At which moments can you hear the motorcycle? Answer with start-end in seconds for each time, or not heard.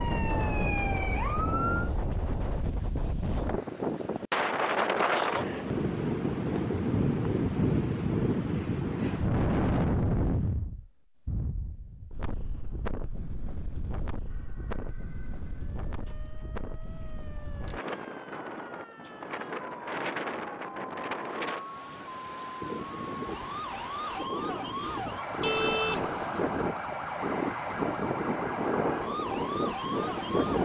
not heard.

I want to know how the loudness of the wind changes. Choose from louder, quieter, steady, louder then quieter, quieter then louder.
quieter then louder.